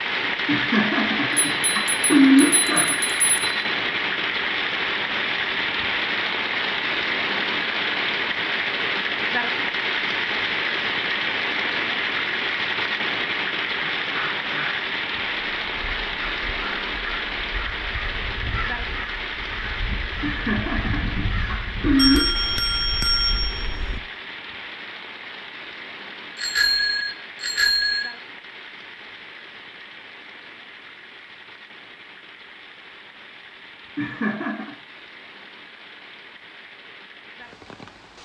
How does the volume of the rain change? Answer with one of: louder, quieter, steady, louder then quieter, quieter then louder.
quieter.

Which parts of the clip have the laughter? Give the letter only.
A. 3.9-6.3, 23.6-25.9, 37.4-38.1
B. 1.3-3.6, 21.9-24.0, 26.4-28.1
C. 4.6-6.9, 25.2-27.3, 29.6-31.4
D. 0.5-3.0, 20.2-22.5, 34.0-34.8
D.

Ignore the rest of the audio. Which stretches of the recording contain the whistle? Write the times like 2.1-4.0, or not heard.
not heard.